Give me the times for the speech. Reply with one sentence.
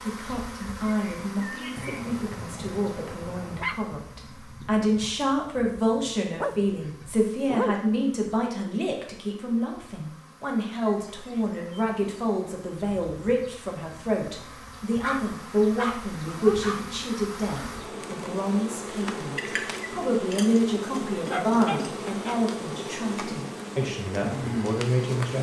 You can hear the speech from 0.0 to 25.3 s.